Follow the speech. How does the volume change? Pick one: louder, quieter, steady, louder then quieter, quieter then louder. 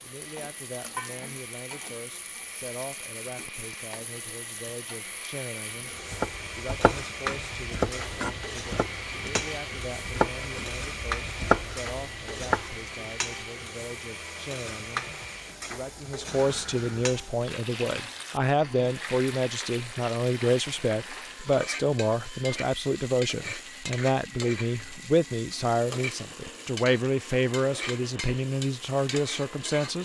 louder.